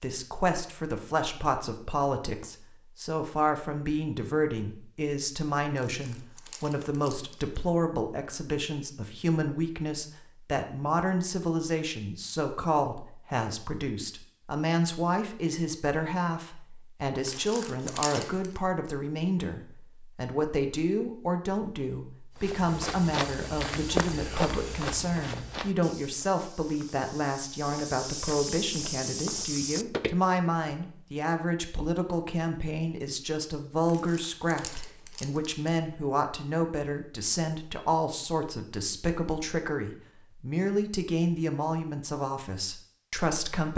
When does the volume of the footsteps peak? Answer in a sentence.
The loudest moment of the footsteps is at 24 seconds.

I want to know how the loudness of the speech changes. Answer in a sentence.
The loudness of the speech stays about the same.